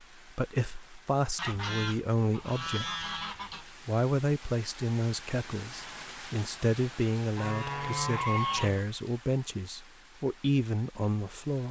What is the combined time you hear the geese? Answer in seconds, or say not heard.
4 s.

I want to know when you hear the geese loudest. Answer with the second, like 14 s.
8 s.